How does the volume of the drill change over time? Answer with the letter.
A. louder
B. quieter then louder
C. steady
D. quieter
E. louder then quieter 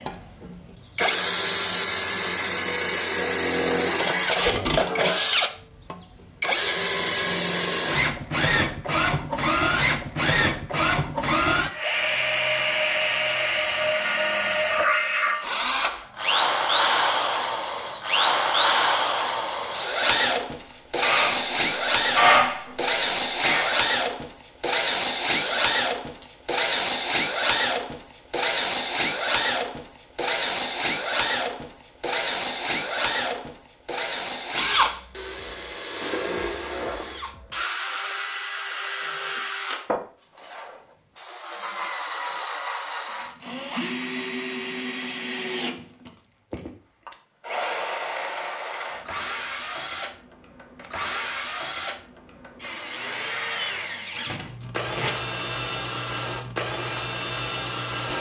D.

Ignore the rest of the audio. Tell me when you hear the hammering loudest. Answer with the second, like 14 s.
22 s.